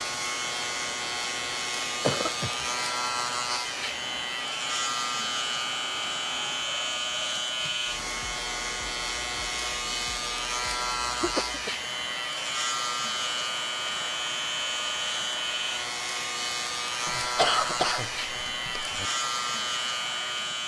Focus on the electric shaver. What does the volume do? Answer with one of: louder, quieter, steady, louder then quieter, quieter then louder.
steady.